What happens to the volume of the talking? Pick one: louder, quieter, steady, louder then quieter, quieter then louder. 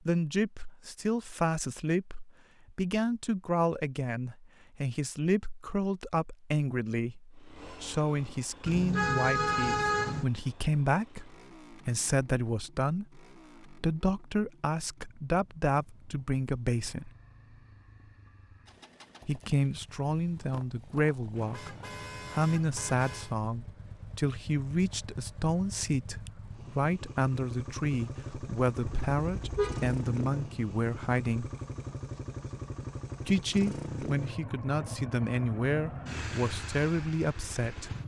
steady.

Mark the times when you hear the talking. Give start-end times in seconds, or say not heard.
0.1-17.1, 19.2-31.5, 33.2-37.9.